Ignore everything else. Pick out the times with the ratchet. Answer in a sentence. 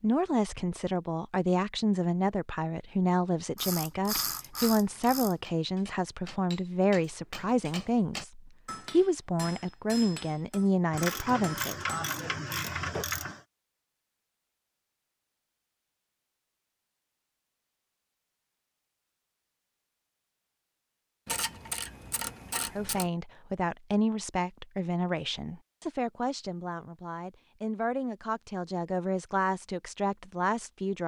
You can hear the ratchet from 3.5 to 5.3 s, from 10.9 to 13.4 s and from 21.2 to 23.1 s.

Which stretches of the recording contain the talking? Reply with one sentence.
The talking can be heard from 0.0 to 11.8 s and from 22.6 to 31.0 s.